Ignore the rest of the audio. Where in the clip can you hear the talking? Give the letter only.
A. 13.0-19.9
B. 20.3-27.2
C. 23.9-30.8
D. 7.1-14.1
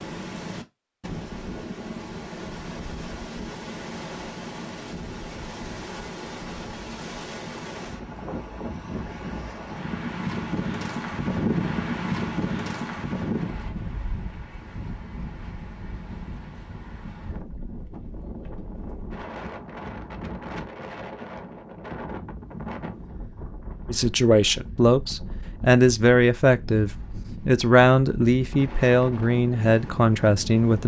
C.